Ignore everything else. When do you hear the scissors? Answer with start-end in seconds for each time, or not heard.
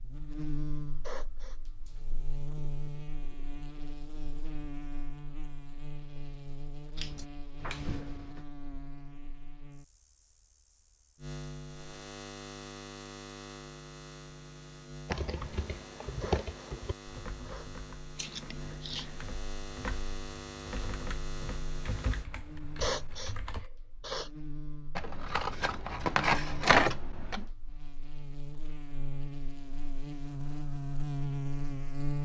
7.0-8.4, 18.1-19.2, 24.9-27.4.